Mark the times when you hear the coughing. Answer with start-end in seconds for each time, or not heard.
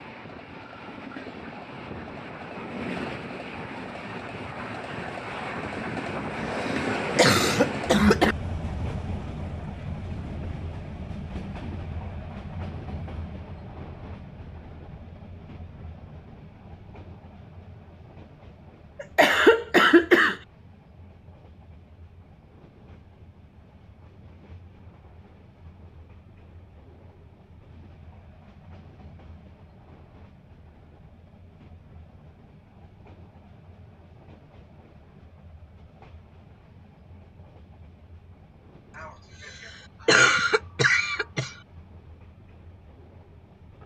6.5-8.3, 19.0-20.4, 39.0-41.5.